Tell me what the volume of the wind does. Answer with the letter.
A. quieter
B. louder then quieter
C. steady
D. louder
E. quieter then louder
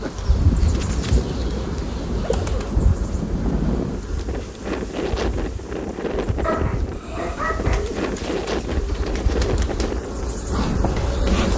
C.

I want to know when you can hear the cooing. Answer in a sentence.
You can hear the cooing from 1.1 to 2.8 s and from 7.3 to 9.3 s.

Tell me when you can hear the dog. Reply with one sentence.
The dog can be heard from 6.4 to 8.0 s.